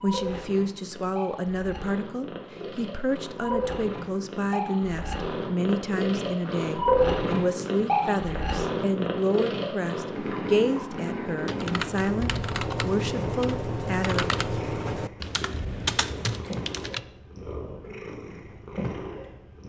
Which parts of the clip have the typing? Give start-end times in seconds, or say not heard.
11.4-17.0.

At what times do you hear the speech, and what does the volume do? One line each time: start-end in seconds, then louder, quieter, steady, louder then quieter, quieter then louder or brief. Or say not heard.
0.0-14.3 steady.